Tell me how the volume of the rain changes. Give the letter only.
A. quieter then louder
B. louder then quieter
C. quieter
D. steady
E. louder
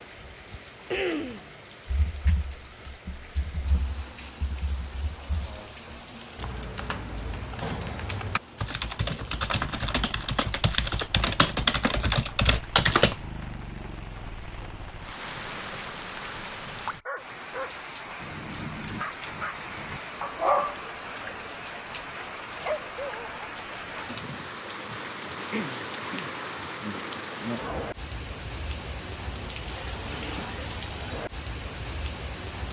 E.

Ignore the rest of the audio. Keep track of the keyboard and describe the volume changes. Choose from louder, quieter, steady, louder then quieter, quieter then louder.
louder.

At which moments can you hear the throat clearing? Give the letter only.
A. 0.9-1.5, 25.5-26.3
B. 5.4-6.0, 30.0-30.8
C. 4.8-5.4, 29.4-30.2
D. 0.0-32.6
A.